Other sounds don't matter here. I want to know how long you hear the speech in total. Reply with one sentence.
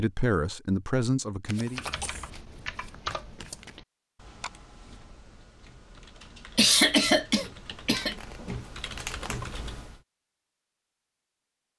The speech can be heard for 2 seconds in total.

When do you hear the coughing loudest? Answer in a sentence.
The volume of the coughing peaks at 7 seconds.